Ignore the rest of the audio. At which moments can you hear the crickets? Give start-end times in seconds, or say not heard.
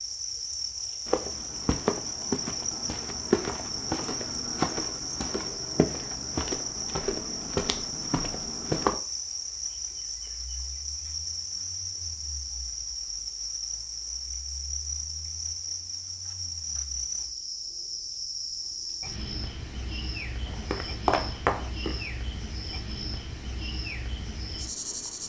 0.0-25.2.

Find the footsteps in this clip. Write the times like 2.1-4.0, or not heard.
1.1-8.9, 20.4-22.0.